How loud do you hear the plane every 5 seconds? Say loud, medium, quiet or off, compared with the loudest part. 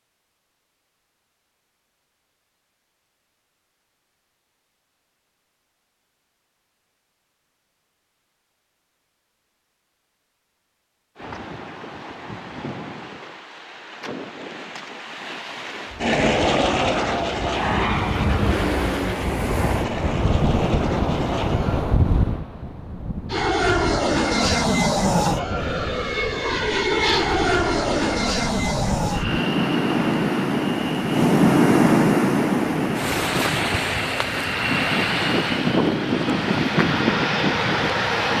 off, off, off, loud, loud, loud, medium, loud.